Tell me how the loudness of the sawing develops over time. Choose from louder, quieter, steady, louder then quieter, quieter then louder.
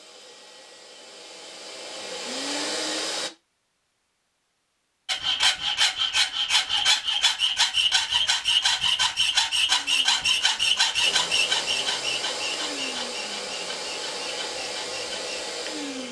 quieter.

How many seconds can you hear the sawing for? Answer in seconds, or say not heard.
10 s.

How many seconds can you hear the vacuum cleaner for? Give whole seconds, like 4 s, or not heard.
10 s.